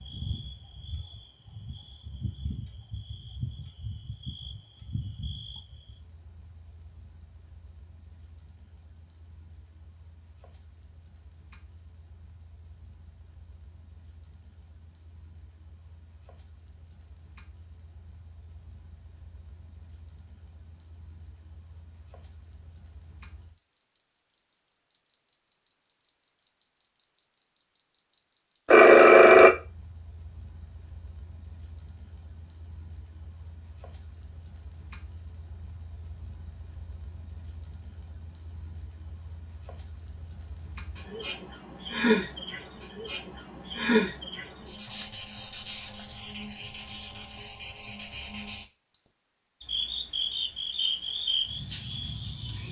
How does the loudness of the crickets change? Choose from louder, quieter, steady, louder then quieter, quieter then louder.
louder.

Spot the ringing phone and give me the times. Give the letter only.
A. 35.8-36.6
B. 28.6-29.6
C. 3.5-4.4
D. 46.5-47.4
B.